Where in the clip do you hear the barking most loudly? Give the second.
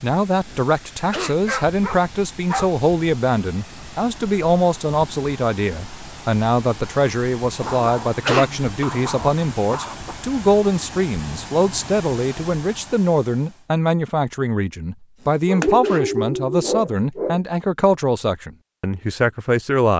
16 s.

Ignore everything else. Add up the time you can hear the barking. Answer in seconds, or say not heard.
6 s.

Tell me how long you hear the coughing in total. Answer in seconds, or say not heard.
3 s.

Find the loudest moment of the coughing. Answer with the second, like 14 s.
8 s.